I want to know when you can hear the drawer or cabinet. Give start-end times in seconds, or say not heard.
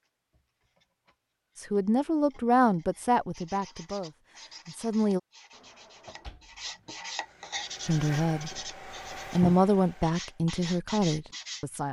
5.5-7.0.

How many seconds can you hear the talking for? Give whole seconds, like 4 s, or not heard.
7 s.